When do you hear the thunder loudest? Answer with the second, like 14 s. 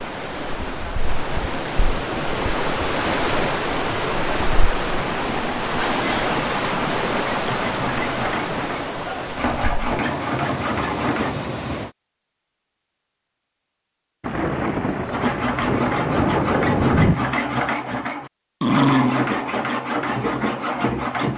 17 s.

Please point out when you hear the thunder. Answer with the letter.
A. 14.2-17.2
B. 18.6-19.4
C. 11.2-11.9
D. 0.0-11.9
A.